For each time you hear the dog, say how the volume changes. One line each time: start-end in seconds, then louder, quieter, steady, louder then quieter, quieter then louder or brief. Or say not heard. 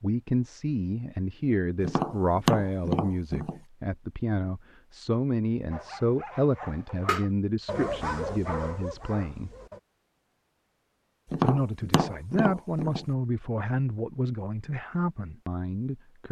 5.7-9.8 louder then quieter.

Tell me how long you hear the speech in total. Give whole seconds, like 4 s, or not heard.
14 s.